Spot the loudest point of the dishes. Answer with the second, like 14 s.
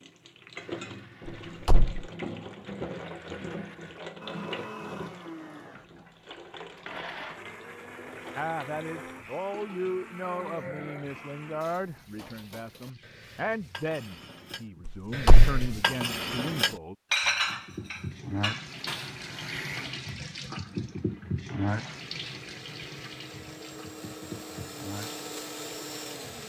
17 s.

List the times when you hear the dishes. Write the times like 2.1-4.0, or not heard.
11.6-19.1.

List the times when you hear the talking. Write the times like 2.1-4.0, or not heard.
8.3-16.9.